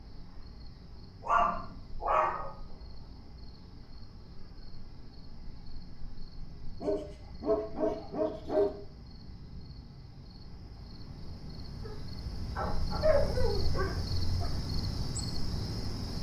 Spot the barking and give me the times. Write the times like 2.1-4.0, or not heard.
1.2-2.5, 6.8-8.7, 11.8-14.6.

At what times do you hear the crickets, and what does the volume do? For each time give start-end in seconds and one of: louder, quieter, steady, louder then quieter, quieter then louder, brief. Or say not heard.
0.0-16.1 louder.